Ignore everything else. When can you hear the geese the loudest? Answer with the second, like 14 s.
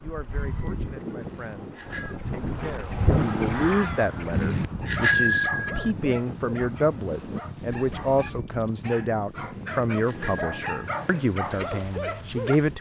3 s.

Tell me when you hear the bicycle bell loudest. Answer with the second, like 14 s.
5 s.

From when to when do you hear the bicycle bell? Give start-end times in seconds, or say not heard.
1.2-2.2, 4.3-5.9, 9.5-11.1.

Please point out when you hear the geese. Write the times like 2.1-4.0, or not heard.
0.2-8.7.